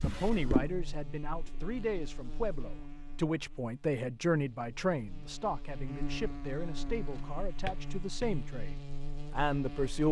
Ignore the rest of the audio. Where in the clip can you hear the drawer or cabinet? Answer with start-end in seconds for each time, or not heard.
0.0-0.8, 6.8-8.3.